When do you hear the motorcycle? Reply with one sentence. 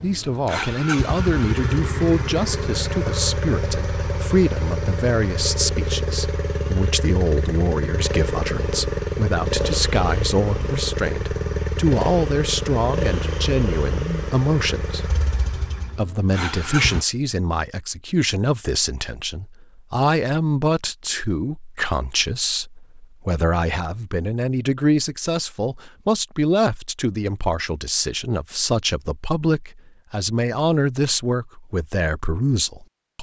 The motorcycle can be heard from 0.0 to 17.1 s.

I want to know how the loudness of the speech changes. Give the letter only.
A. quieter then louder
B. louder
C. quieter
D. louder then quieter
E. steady
E.